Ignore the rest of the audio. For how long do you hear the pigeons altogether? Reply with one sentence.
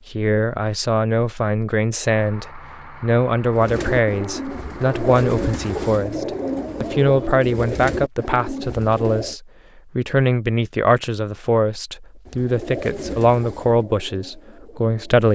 You can hear the pigeons for 9 seconds altogether.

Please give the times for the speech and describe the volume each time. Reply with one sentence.
The speech can be heard from 0.1 to 15.3 s, at a steady volume.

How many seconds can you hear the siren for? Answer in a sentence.
You can't hear the siren here.